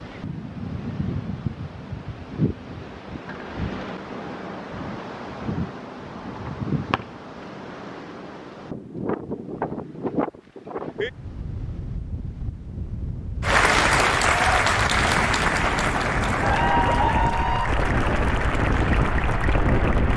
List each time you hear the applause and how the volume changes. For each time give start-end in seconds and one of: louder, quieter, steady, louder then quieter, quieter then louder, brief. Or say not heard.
13.4-20.1 quieter.